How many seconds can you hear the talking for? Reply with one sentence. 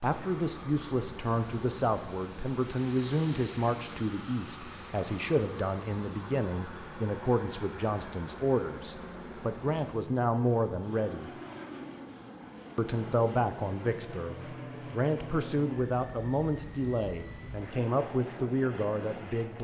You can hear the talking for 18 seconds altogether.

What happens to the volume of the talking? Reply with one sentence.
The loudness of the talking stays about the same.